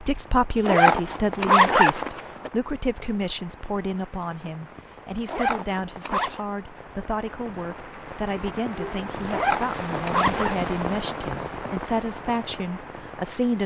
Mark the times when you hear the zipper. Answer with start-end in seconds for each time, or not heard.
0.7-2.5, 5.2-6.5, 9.3-10.6.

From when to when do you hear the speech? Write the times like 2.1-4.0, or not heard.
0.0-13.6.